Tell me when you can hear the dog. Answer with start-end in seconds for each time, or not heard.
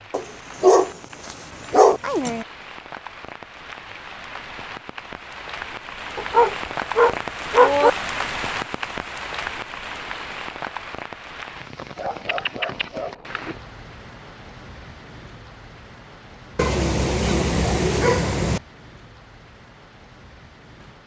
0.1-2.5, 6.2-7.9, 11.9-13.6, 16.6-18.6.